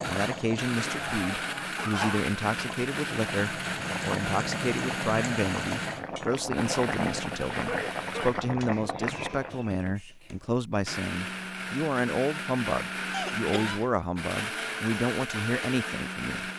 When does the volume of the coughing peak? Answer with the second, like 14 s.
2 s.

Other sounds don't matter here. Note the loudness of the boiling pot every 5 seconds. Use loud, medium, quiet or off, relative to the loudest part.
loud, loud, off, off.